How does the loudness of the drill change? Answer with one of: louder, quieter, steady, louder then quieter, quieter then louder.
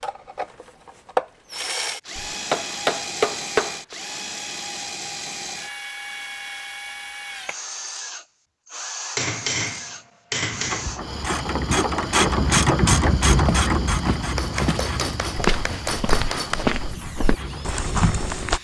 quieter.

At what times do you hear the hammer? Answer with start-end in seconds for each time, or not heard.
2.1-4.0, 9.2-10.8, 14.3-16.6.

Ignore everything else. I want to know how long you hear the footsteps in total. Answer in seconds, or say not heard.
5 s.